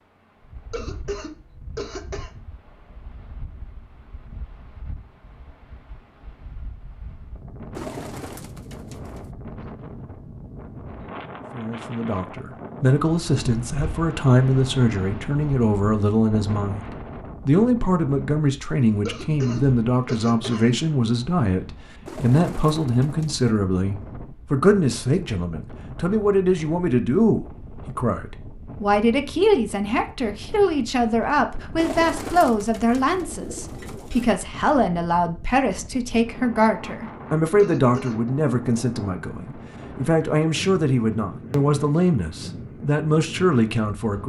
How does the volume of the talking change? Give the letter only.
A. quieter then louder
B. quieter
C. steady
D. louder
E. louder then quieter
C.